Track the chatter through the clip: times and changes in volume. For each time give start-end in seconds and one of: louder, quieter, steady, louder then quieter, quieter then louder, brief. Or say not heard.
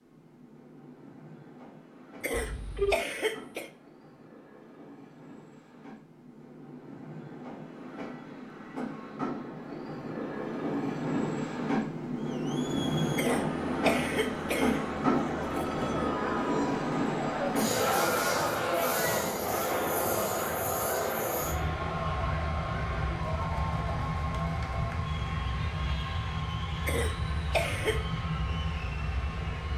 12.2-29.7 louder then quieter.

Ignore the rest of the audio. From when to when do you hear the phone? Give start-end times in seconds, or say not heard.
2.3-3.0, 15.4-16.1.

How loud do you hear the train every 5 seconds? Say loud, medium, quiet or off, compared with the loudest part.
quiet, medium, loud, loud, loud, medium.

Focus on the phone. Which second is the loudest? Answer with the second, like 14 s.
3 s.